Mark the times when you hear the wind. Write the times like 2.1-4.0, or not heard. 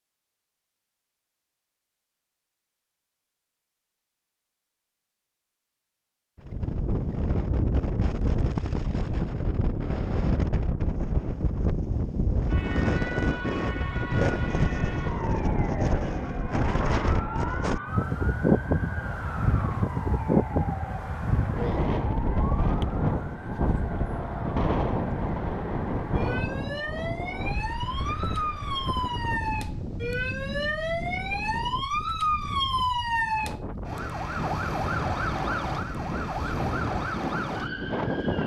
6.5-38.4.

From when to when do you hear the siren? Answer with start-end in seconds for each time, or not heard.
12.4-38.4.